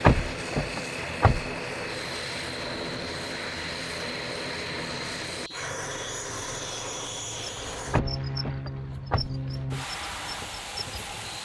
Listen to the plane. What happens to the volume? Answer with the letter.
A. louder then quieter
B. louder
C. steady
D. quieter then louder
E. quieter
C.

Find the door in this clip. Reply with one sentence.
The door can be heard from 0.0 to 1.4 s and from 7.9 to 9.8 s.